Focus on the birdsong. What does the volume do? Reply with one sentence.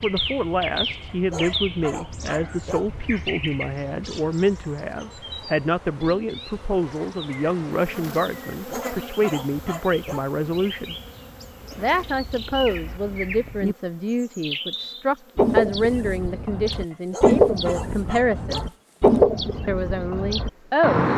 The volume of the birdsong goes down, then up.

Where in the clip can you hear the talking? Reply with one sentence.
You can hear the talking from 0.0 to 10.9 s, from 11.8 to 18.7 s and from 19.6 to 21.1 s.